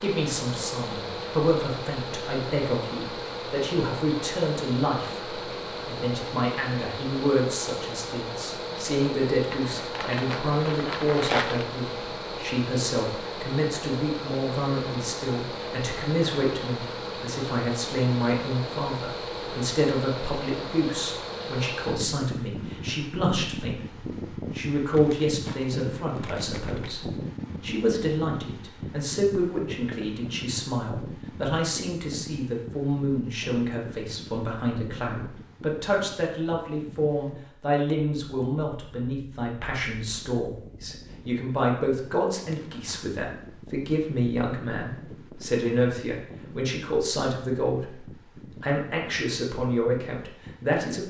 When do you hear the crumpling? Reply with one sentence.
You can hear the crumpling from 9.5 to 11.7 s, from 24.9 to 26.9 s and from 42.3 to 43.1 s.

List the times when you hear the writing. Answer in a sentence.
You can't hear the writing here.